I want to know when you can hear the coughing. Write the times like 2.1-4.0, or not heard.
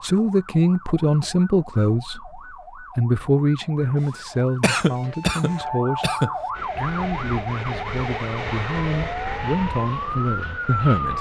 4.6-6.3.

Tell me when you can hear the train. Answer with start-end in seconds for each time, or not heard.
6.5-11.1.